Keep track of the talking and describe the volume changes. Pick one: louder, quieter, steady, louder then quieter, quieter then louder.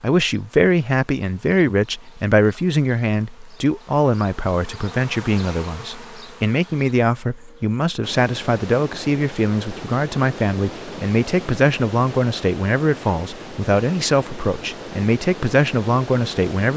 steady.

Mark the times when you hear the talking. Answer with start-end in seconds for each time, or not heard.
0.0-16.7.